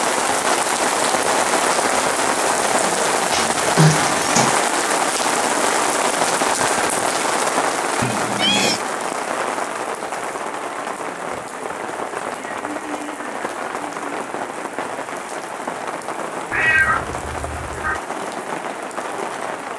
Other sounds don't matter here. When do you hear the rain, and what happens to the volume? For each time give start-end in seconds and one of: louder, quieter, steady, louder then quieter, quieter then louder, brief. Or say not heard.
0.0-19.7 quieter.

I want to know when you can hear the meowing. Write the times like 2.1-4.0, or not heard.
3.3-4.5, 8.0-8.8, 16.5-18.0.